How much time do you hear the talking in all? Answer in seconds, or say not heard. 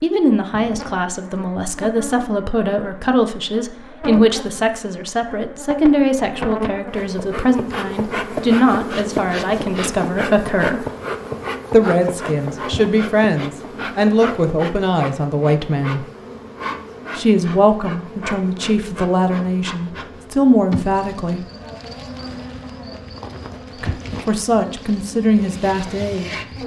22 s.